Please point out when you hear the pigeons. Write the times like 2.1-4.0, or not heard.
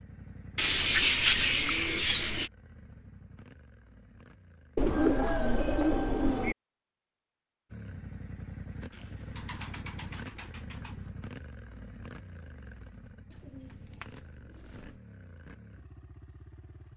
0.6-2.5, 4.8-6.5, 8.9-11.0, 13.3-15.0.